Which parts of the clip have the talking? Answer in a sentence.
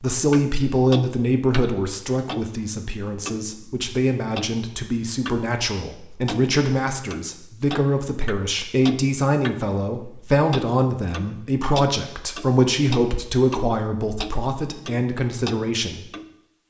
The talking can be heard from 0.0 to 16.1 s.